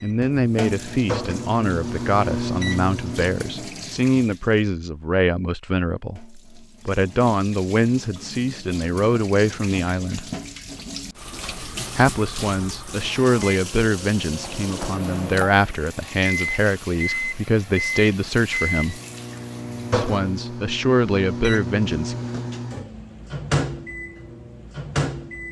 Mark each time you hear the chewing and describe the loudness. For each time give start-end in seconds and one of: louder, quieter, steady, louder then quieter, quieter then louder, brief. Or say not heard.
not heard.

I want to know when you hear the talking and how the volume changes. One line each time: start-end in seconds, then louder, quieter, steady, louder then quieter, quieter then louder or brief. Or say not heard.
0.0-10.2 steady
11.9-19.0 steady
19.9-22.1 brief.